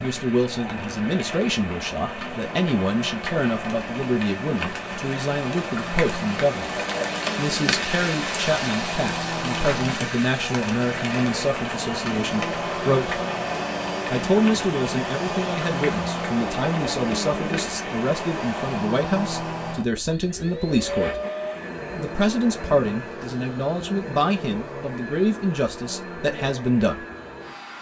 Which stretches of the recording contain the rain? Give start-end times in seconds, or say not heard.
0.0-18.6.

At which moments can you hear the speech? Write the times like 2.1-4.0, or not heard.
0.0-13.2, 14.1-21.1, 21.9-26.9.